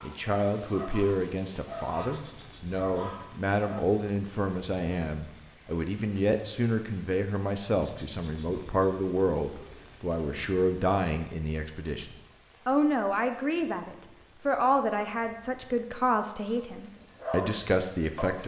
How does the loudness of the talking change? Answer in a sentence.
The volume of the talking stays about the same.